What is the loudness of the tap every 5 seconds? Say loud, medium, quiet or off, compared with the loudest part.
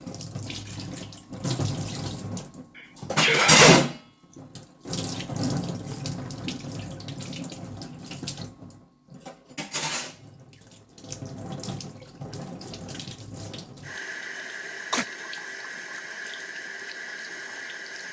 loud, medium, quiet, quiet.